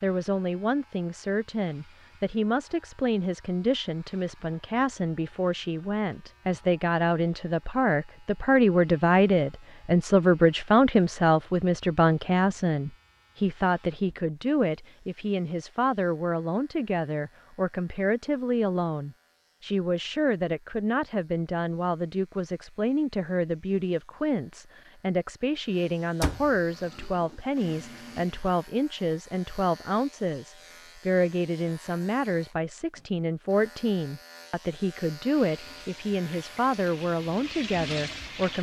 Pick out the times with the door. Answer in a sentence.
The door can be heard from 26.2 to 26.6 s.